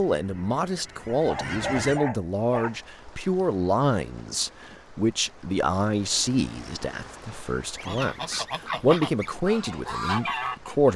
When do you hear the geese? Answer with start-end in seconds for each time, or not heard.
0.0-2.0, 7.8-10.9.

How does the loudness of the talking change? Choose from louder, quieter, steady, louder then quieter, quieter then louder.
quieter then louder.